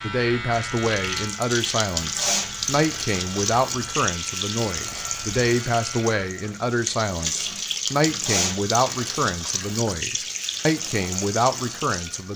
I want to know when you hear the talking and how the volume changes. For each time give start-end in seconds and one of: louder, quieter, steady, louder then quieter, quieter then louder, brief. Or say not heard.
0.0-12.3 steady.